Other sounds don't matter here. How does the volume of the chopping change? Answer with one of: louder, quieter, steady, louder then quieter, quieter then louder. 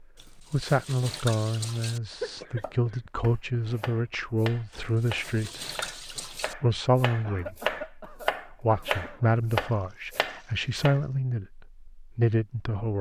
louder.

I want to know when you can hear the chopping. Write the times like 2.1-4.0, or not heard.
2.1-11.0.